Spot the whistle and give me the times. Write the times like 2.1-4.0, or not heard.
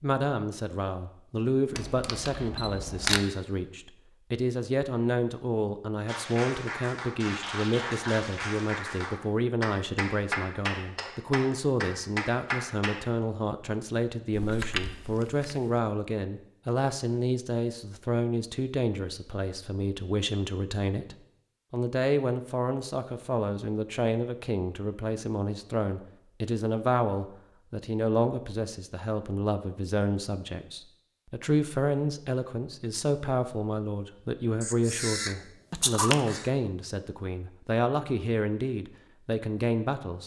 not heard.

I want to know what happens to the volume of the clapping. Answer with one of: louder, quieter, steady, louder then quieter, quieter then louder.
louder.